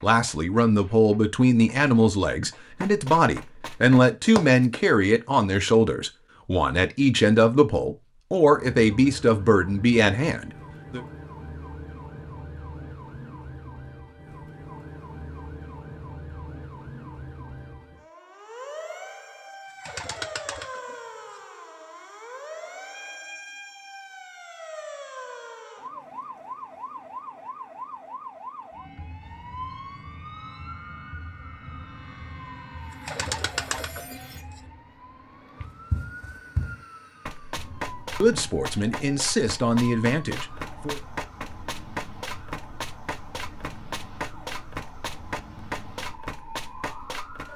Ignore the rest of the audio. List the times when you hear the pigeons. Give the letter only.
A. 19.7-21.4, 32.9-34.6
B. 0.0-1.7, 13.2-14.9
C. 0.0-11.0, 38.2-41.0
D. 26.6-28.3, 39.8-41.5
A.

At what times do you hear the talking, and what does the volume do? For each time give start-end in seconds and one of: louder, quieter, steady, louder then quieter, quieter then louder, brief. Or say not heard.
0.0-11.0 steady
38.2-41.0 brief.